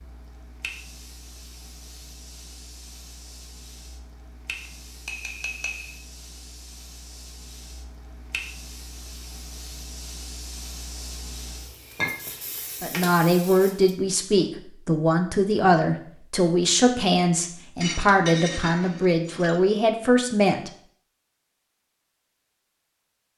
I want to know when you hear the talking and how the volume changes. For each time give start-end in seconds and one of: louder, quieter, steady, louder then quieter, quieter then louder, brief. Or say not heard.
12.8-20.7 steady.